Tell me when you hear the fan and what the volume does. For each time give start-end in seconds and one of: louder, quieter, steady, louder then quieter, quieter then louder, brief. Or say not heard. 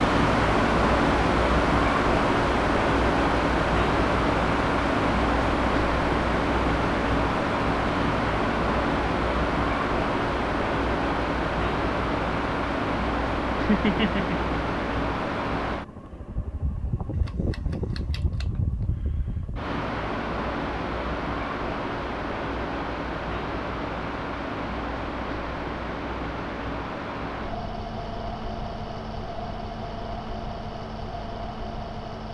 0.0-32.2 quieter.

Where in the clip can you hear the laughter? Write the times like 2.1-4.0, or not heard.
13.6-14.5.